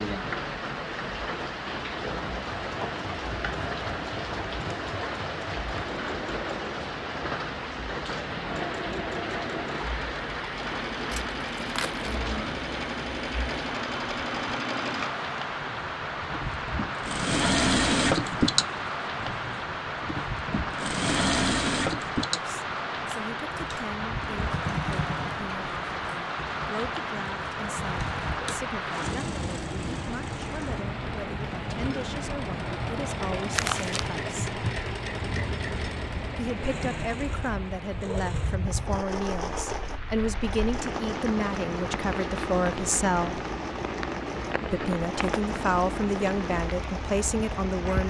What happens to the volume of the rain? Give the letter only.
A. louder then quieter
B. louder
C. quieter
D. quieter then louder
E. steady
E.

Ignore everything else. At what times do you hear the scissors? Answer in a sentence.
You can't hear the scissors here.